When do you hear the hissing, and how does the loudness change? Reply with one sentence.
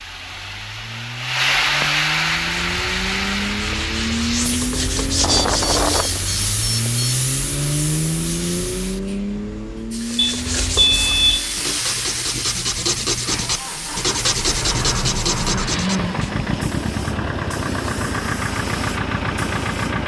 The hissing can be heard from 0.0 to 20.0 s, getting quieter.